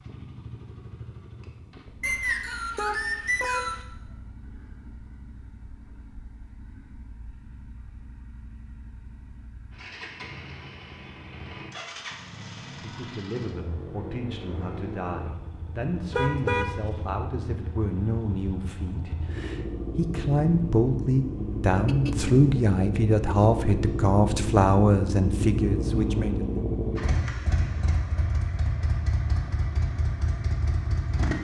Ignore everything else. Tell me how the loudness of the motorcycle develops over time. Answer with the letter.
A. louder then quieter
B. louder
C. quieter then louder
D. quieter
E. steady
B.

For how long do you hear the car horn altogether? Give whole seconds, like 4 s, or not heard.
2 s.